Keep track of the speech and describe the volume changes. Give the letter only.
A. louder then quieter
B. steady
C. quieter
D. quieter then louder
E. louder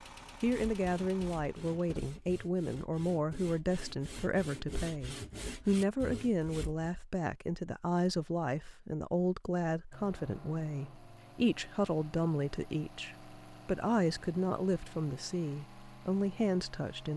B.